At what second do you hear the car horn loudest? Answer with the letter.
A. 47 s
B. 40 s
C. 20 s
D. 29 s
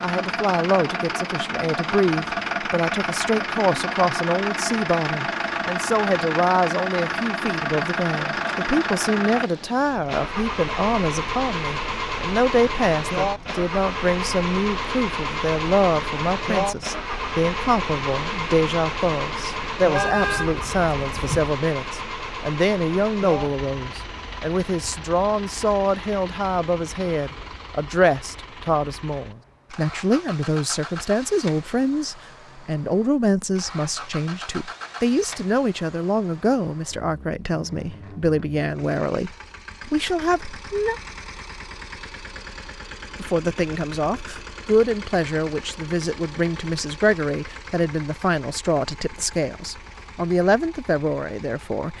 C.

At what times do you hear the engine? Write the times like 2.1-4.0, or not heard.
0.0-51.9.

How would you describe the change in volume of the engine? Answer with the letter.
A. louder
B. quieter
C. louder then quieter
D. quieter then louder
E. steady
B.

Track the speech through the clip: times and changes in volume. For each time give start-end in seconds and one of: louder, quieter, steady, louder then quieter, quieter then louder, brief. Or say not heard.
0.0-41.0 steady
43.1-51.9 steady.